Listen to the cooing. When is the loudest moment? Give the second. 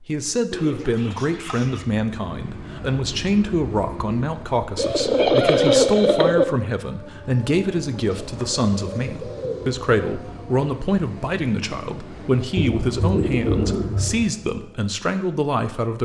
6 s.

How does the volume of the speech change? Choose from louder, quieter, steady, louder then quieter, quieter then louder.
steady.